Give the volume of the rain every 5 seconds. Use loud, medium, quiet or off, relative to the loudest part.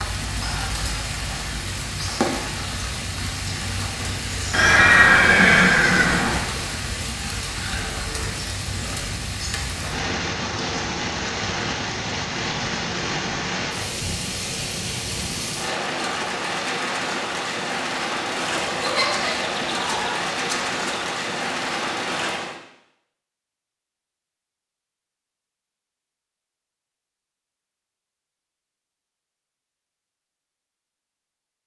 loud, loud, loud, loud, loud, off, off.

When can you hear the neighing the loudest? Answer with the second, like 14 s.
5 s.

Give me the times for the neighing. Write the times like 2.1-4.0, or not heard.
4.5-6.4, 18.4-20.8.